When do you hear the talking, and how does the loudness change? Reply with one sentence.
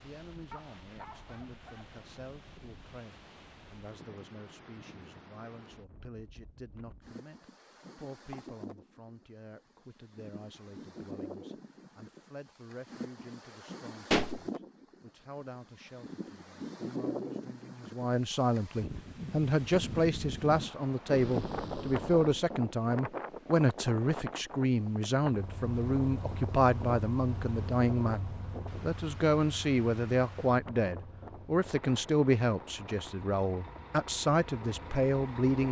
The talking can be heard from 0.0 to 35.6 s, getting louder.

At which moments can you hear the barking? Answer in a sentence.
You can hear the barking from 0.5 to 2.0 s.